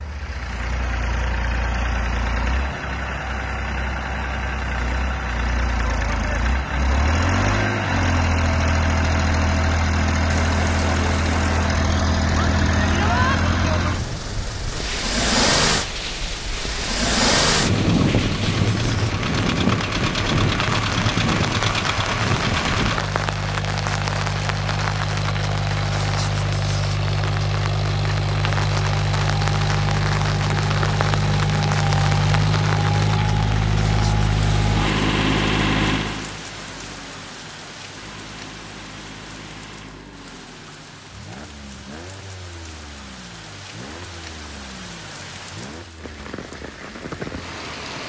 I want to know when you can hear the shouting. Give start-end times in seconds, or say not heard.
12.9-13.4.